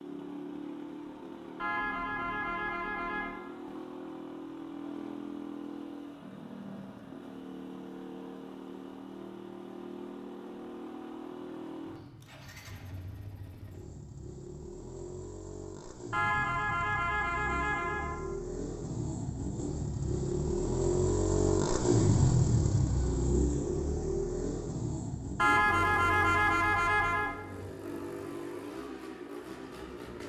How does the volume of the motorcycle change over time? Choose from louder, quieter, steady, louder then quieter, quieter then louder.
louder then quieter.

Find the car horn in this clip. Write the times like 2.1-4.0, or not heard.
1.6-3.4, 16.1-18.1, 25.4-27.4.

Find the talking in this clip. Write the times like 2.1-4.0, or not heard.
not heard.